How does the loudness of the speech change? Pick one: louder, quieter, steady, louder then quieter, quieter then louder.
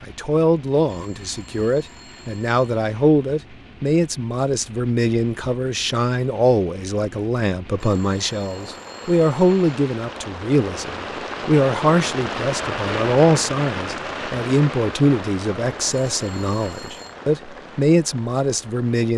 steady.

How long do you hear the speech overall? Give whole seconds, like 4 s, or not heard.
19 s.